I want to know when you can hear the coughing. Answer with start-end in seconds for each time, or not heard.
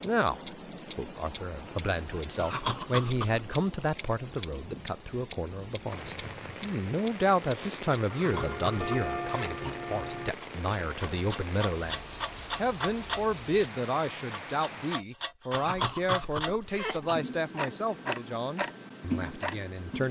2.4-3.5, 8.1-9.8, 15.5-17.1.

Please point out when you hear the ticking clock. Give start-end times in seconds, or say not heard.
0.0-20.0.